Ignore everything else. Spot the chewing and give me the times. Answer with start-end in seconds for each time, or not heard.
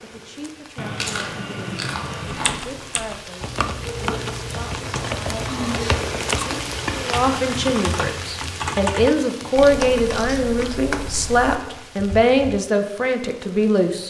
0.8-2.6, 5.0-6.7, 9.4-10.8.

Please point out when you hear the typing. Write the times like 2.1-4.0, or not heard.
2.2-12.6.